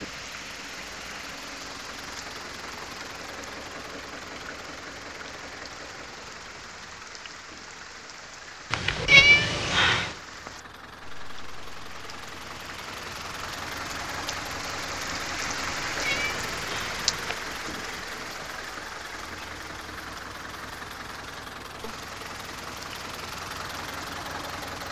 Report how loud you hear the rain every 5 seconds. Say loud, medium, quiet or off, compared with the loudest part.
medium, medium, medium, loud, medium.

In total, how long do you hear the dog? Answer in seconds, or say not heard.
not heard.